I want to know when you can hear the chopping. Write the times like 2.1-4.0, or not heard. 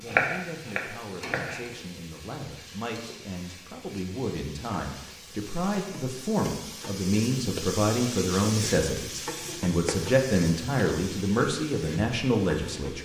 0.1-1.6.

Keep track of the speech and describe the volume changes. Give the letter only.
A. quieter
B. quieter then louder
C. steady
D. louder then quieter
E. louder
E.